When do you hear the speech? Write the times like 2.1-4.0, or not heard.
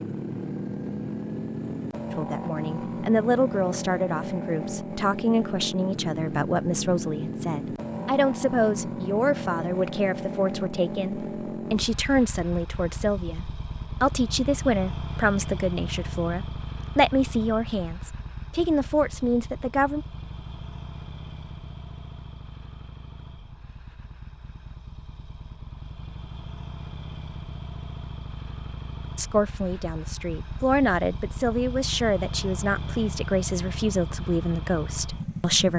2.1-20.1, 29.1-35.7.